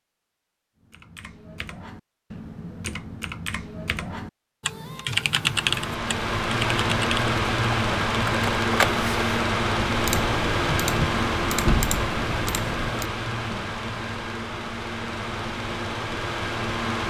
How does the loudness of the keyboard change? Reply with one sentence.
The loudness of the keyboard goes up.